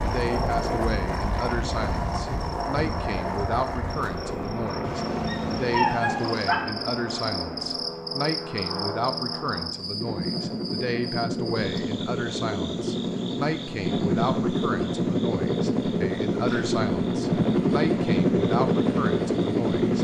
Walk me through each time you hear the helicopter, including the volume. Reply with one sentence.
You can hear the helicopter from 0.0 to 19.9 s, getting louder.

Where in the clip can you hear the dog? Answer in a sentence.
The dog can be heard from 4.8 to 6.5 s.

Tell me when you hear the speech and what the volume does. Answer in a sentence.
You can hear the speech from 0.0 to 19.9 s, at a steady volume.